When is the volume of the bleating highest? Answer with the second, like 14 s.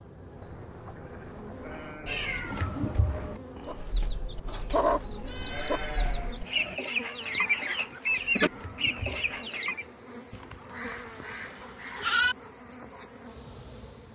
12 s.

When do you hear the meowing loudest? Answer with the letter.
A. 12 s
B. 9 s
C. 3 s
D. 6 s
C.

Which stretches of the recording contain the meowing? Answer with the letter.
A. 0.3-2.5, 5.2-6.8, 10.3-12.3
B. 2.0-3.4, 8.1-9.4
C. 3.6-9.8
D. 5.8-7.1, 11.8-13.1
B.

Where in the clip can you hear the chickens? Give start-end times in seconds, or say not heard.
3.6-9.8.